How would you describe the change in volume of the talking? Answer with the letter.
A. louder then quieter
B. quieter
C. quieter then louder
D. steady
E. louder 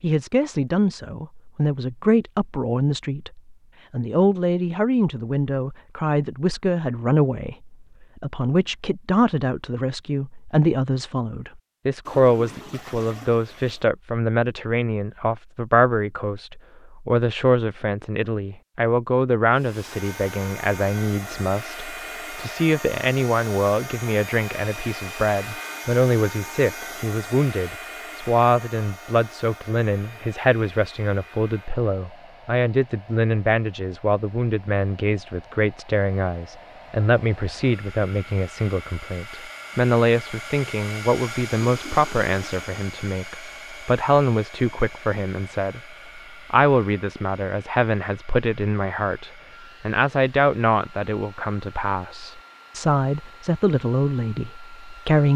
D.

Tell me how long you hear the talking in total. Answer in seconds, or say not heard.
55 s.